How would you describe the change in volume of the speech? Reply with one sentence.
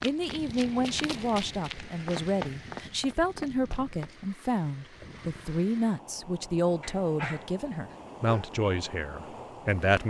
The loudness of the speech stays about the same.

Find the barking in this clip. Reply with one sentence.
The barking can be heard from 6.8 to 8.6 s.